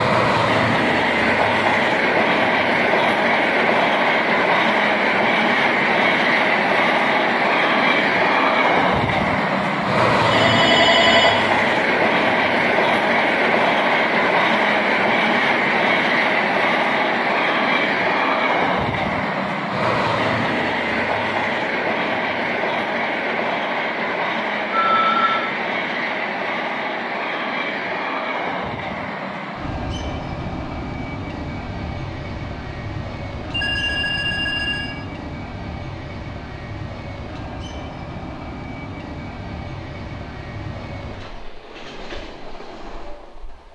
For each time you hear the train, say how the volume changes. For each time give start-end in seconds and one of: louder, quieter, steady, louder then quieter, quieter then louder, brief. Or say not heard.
0.0-43.7 quieter.